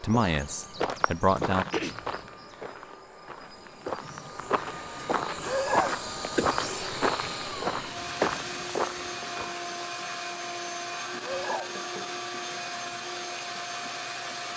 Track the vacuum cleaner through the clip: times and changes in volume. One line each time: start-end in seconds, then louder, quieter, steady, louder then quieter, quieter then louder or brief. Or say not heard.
0.0-14.5 louder.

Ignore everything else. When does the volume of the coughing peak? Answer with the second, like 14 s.
6 s.